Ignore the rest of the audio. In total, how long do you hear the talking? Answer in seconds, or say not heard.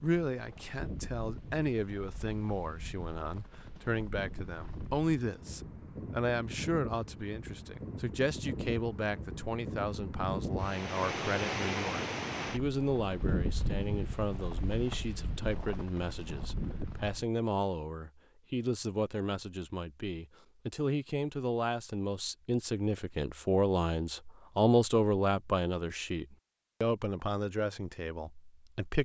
29 s.